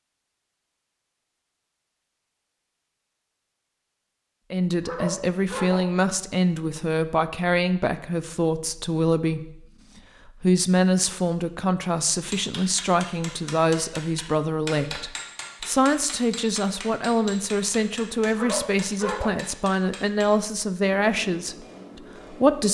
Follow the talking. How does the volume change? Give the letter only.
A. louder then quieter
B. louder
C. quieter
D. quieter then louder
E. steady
E.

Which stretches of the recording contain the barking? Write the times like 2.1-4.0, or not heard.
4.8-5.8, 18.4-19.3.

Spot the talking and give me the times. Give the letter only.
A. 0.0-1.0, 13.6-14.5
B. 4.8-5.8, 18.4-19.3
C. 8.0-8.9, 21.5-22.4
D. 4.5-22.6
D.